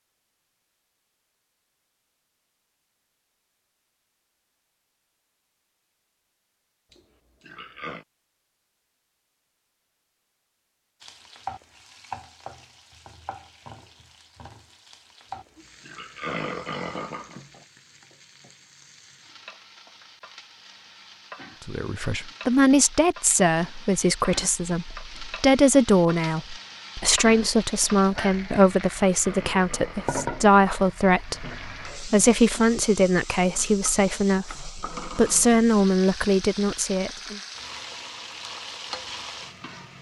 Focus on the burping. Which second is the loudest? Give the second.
16 s.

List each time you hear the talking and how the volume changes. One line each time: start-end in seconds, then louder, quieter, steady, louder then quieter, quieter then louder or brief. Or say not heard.
21.6-37.4 steady.